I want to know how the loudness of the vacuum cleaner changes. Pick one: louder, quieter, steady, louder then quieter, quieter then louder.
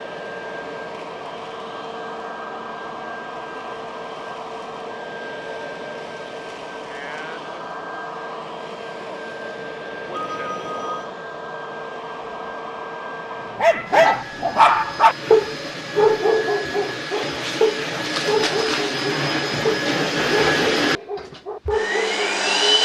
louder.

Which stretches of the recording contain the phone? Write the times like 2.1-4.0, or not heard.
10.1-11.1.